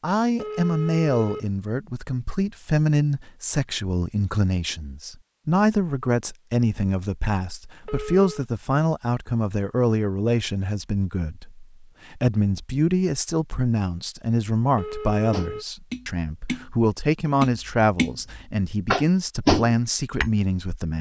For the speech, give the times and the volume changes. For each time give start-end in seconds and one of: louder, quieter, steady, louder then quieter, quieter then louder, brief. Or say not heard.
0.0-20.9 steady.